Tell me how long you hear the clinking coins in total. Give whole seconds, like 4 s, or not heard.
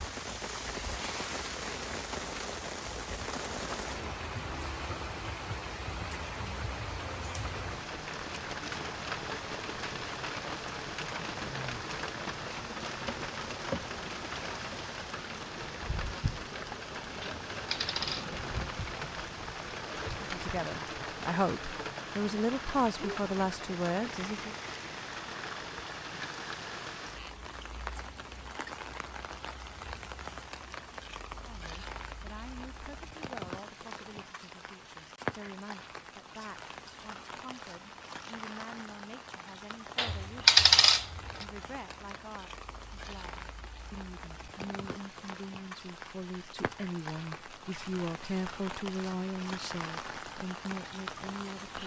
3 s.